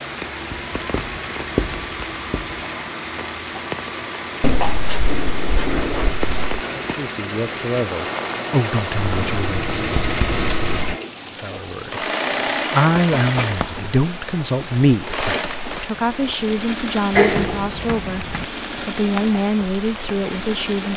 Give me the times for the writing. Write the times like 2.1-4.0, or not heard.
0.5-2.6, 4.4-6.6, 8.9-11.0, 13.2-13.8, 17.1-18.4.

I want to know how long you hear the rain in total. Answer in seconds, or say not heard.
21 s.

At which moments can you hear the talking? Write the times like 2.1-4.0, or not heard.
6.7-9.7, 11.3-18.2, 18.9-20.9.